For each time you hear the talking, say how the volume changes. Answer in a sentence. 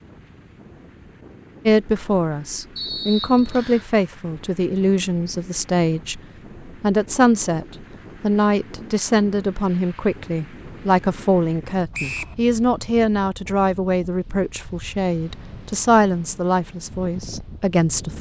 The talking can be heard from 1.6 to 18.1 s, at a steady volume.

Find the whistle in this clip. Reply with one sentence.
The whistle can be heard from 2.8 to 3.9 s and from 11.9 to 12.3 s.